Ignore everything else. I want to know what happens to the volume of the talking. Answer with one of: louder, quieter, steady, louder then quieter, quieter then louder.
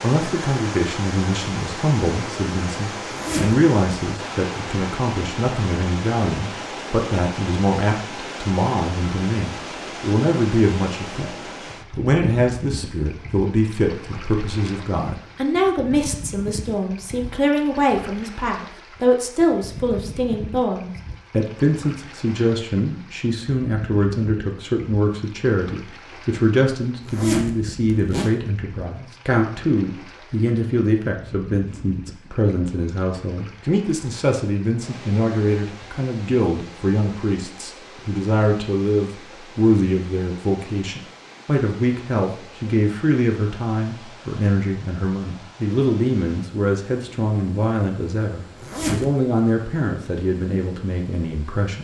steady.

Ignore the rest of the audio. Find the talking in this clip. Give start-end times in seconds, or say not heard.
0.0-11.3, 11.9-51.7.